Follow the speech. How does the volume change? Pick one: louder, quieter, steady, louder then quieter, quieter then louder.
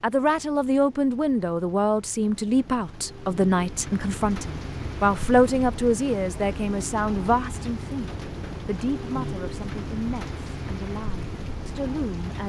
quieter.